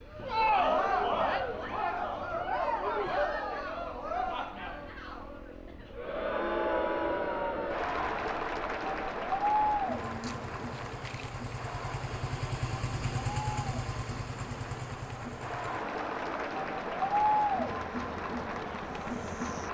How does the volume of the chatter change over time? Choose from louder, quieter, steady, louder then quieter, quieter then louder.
quieter then louder.